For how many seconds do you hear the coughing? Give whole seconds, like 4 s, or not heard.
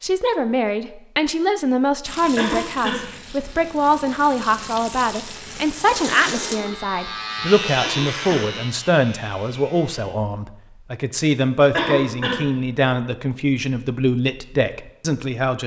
2 s.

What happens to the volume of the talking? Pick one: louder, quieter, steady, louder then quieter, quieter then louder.
steady.